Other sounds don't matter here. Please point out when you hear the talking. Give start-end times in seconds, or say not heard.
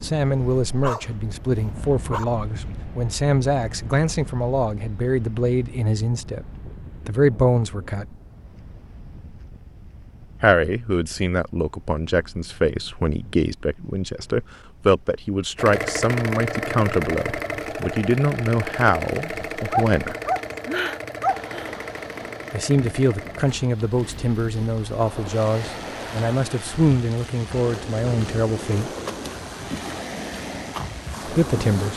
0.0-6.5, 7.0-8.2, 10.4-20.1, 22.5-28.9, 31.2-31.9.